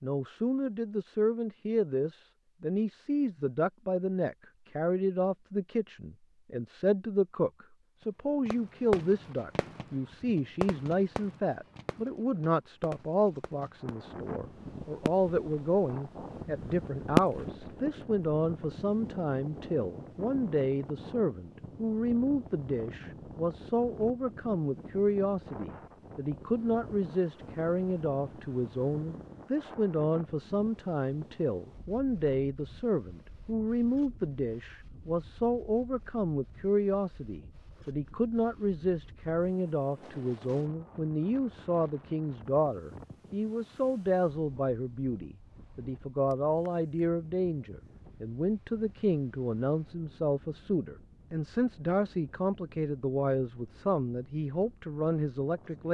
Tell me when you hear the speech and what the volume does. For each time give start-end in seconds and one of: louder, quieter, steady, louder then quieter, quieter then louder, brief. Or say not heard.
0.0-55.8 steady.